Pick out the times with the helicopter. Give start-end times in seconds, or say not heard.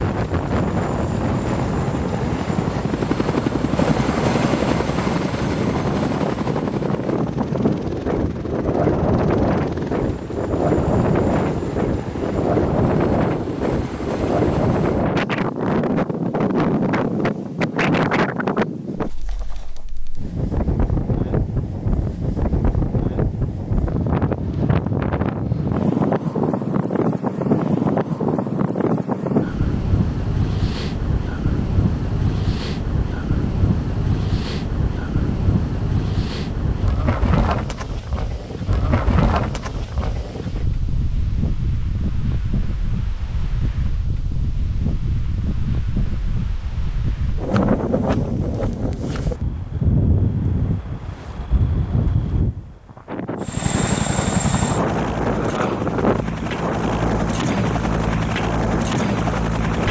0.0-15.1, 53.4-59.8.